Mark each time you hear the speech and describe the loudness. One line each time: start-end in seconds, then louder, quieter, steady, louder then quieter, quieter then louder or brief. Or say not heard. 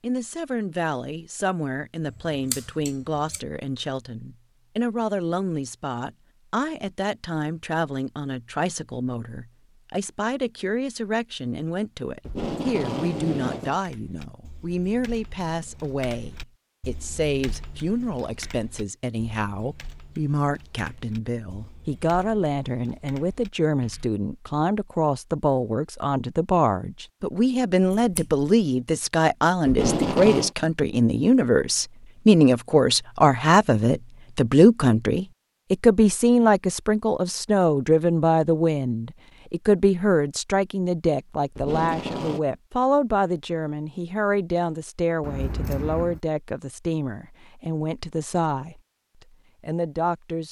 0.0-50.4 louder then quieter.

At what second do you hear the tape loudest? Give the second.
30 s.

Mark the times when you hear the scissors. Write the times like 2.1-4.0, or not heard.
2.5-3.4, 27.9-28.4, 45.2-46.2.